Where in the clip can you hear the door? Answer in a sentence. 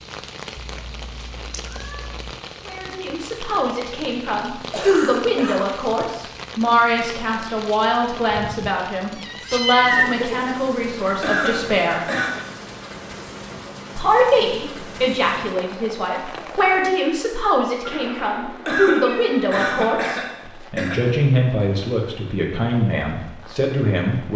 The door can't be heard in this clip.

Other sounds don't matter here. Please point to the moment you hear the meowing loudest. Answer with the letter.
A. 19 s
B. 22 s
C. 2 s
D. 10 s
D.